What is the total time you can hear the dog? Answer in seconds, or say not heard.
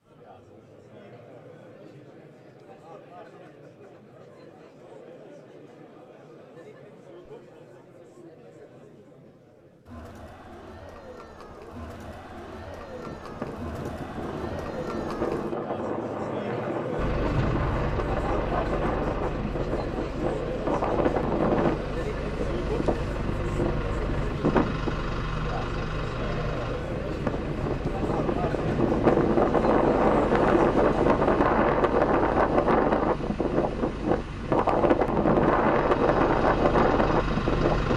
not heard.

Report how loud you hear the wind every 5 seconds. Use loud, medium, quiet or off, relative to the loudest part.
off, off, quiet, medium, medium, loud, loud, loud.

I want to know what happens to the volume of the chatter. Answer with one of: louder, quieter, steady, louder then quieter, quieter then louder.
louder.